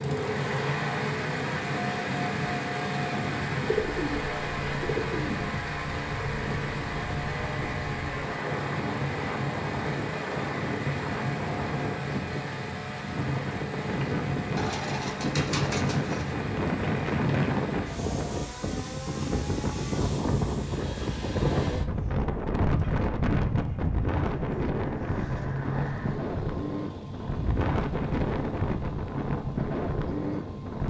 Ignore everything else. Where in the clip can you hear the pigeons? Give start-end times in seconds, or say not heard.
3.6-5.4, 14.6-16.4, 24.1-26.1.